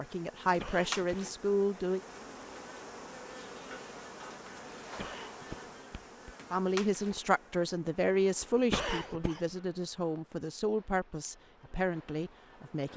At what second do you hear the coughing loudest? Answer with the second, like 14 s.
9 s.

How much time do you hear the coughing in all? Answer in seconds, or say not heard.
3 s.